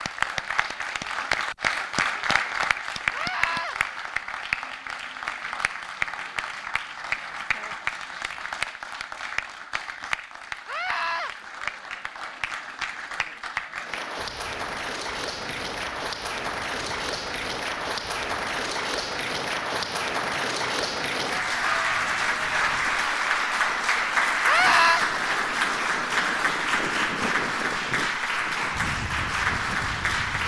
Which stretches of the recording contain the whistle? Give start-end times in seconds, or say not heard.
not heard.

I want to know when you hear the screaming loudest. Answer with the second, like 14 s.
25 s.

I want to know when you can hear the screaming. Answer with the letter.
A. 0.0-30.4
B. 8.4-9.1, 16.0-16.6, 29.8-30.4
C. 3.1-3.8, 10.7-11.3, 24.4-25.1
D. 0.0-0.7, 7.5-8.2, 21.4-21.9
C.